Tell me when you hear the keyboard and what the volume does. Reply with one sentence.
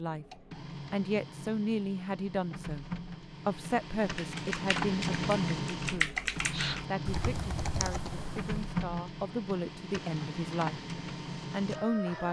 The keyboard can be heard from 4.2 to 8.7 s, getting louder then quieter.